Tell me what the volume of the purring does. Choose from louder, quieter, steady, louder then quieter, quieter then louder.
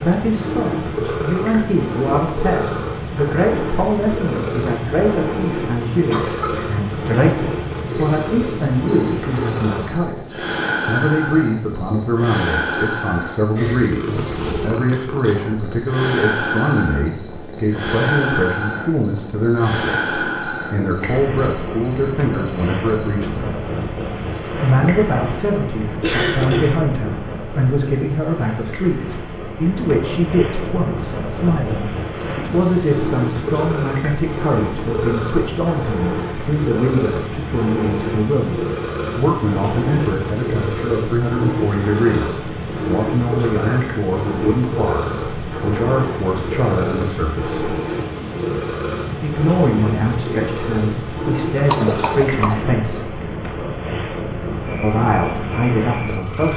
steady.